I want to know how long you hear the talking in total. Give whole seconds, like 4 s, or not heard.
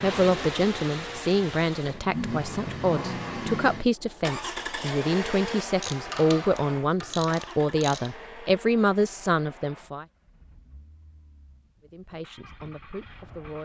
12 s.